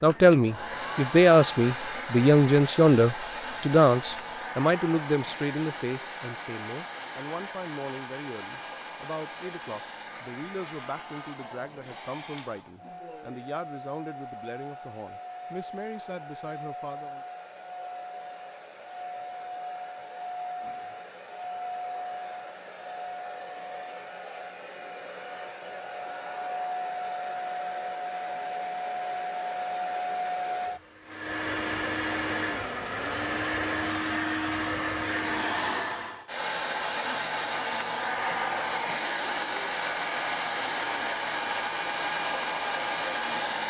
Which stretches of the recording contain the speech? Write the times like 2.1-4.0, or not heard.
0.0-17.2.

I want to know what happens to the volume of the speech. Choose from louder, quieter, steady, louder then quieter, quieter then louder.
quieter.